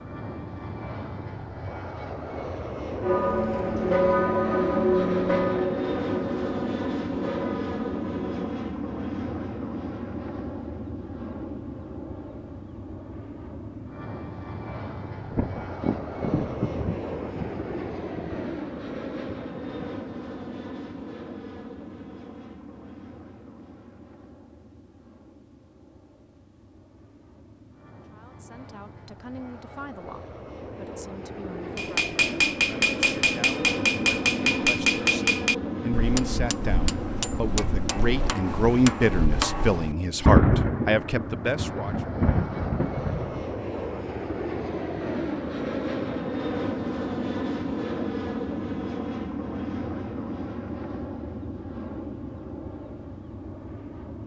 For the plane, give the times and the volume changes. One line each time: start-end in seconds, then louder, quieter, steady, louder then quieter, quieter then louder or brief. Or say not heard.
0.0-54.2 quieter then louder.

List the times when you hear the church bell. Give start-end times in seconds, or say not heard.
3.0-8.3.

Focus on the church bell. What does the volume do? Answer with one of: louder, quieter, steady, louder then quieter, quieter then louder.
quieter.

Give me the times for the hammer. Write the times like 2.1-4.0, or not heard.
31.8-40.0.